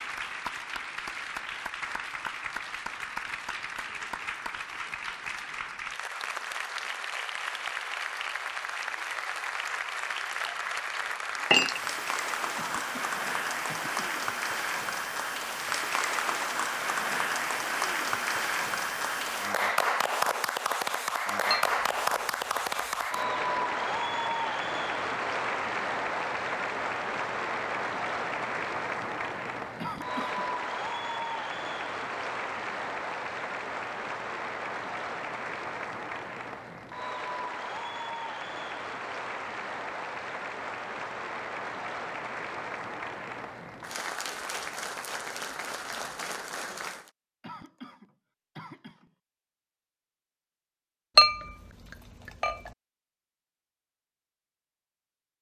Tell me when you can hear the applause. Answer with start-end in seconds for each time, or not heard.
0.0-47.1.